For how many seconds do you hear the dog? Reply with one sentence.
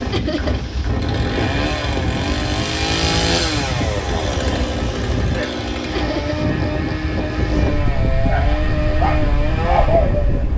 You can hear the dog for 2 seconds altogether.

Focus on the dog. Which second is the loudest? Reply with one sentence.
The volume of the dog peaks at 10 seconds.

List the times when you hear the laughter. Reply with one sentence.
You can hear the laughter from 0.1 to 0.6 s and from 5.9 to 6.4 s.